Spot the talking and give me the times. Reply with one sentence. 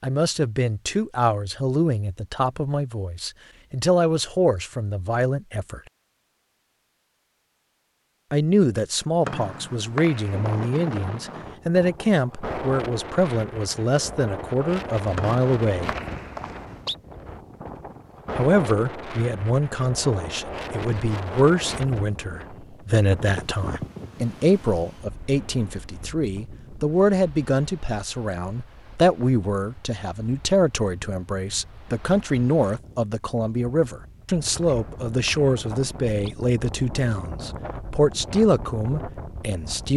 You can hear the talking from 0.0 to 5.8 s, from 8.3 to 15.9 s and from 18.4 to 39.9 s.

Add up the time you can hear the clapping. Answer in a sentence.
You can't hear the clapping here.